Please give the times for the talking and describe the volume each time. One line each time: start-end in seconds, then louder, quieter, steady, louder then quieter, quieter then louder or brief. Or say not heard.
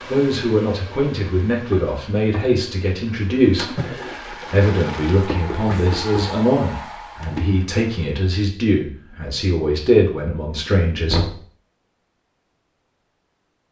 0.1-11.3 steady.